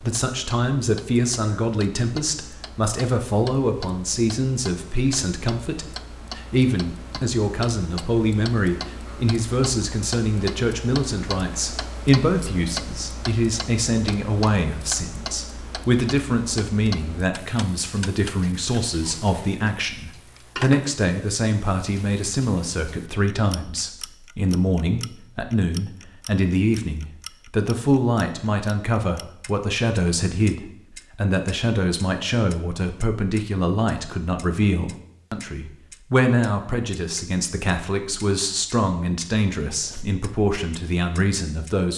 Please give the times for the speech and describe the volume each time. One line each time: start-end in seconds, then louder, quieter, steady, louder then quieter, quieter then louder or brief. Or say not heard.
0.0-41.9 steady.